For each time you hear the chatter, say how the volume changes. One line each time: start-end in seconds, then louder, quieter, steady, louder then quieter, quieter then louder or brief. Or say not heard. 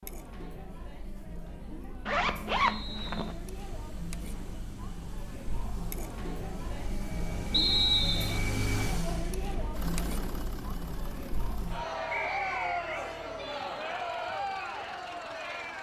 0.0-15.7 louder.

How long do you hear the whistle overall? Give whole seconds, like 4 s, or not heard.
2 s.